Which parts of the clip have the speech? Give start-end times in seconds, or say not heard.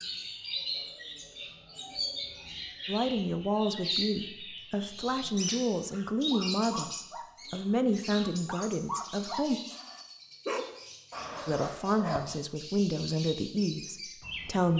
2.9-9.6, 11.4-14.7.